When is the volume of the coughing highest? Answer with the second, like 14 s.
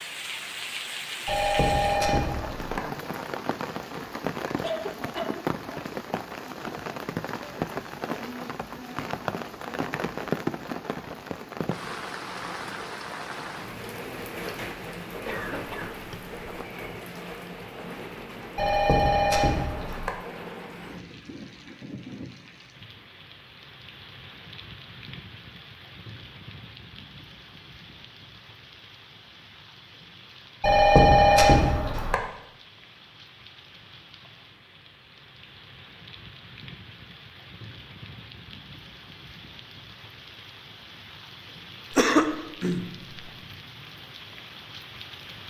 42 s.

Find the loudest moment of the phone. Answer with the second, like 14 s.
31 s.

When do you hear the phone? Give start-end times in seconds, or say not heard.
1.2-2.8, 18.6-20.1, 30.6-32.1.